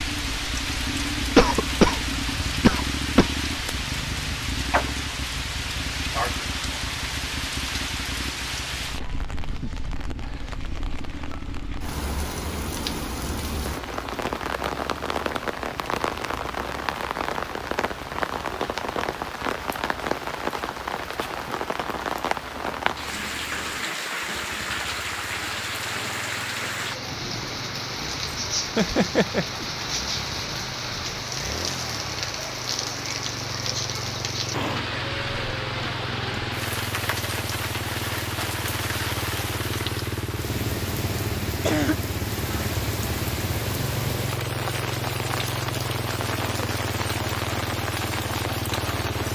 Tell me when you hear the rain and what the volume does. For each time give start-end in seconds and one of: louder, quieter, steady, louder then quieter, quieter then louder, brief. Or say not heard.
0.0-49.3 steady.